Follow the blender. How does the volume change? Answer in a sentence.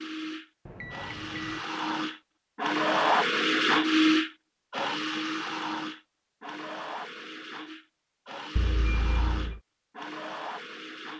The loudness of the blender goes up, then down.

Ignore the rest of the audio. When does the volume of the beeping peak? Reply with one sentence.
The volume of the beeping peaks at 9 seconds.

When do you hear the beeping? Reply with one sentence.
The beeping can be heard from 0.7 to 1.6 s and from 8.6 to 9.6 s.